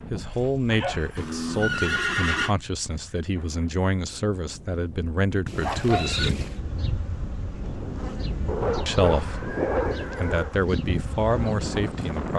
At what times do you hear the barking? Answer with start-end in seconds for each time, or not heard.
0.3-1.3, 5.6-6.1, 8.4-10.5.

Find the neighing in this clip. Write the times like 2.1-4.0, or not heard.
1.1-2.5, 5.5-6.6, 8.7-10.6.